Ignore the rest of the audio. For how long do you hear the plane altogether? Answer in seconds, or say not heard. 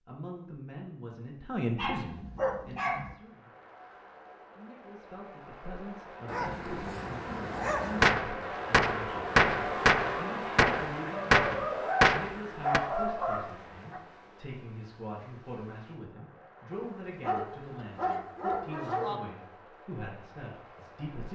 18 s.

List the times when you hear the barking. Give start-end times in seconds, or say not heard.
1.8-3.1, 6.2-8.2, 11.1-14.0, 16.7-19.2.